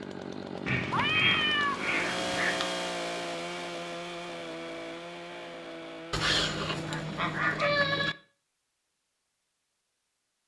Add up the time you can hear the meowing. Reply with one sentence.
You can hear the meowing for 4 seconds altogether.